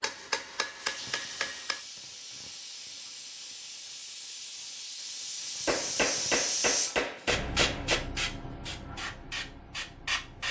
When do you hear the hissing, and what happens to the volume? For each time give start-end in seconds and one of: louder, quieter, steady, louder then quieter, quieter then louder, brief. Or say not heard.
0.1-10.4 louder then quieter.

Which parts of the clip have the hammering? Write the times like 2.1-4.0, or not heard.
0.0-1.9, 5.7-8.1.